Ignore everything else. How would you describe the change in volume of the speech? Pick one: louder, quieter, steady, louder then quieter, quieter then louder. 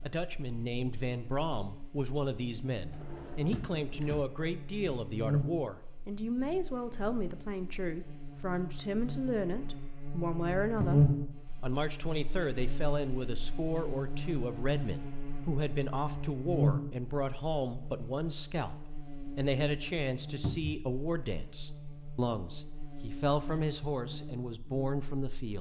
steady.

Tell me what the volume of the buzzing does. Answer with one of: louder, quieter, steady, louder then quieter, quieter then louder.
louder then quieter.